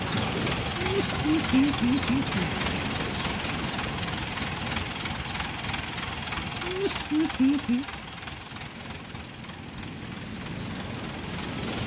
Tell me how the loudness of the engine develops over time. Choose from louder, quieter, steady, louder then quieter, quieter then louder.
quieter.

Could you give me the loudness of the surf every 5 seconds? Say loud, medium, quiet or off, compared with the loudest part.
loud, medium, loud.